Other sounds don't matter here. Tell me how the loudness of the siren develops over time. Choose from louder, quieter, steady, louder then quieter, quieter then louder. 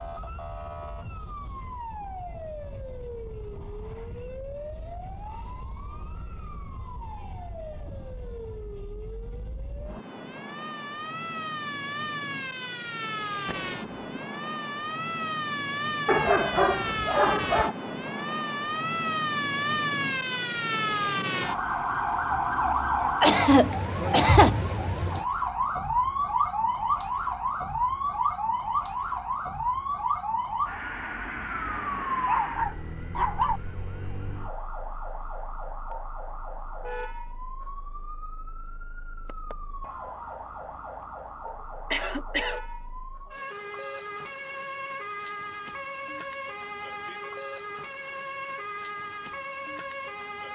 louder then quieter.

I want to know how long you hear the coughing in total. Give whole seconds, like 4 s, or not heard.
3 s.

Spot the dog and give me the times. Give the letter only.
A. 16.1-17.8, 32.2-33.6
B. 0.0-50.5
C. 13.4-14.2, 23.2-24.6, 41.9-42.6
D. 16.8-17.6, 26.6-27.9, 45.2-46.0
A.